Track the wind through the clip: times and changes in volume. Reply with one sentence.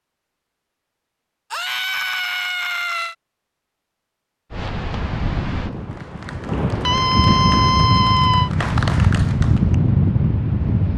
The wind can be heard from 4.5 to 10.9 s, getting louder.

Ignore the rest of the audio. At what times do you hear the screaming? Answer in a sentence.
The screaming can be heard from 1.5 to 3.1 s and from 6.8 to 8.5 s.